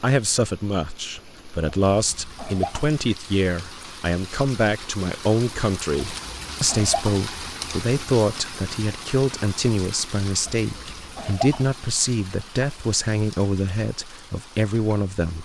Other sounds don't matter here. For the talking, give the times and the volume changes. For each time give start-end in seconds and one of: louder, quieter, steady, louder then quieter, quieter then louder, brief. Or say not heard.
0.0-15.3 steady.